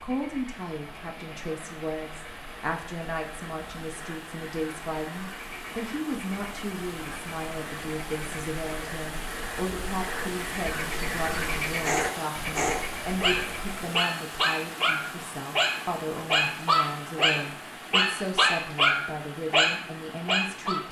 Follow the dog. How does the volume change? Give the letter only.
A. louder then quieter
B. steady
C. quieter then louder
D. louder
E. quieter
D.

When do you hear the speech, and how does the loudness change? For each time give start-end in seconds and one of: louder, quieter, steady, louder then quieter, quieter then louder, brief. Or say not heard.
0.0-20.8 steady.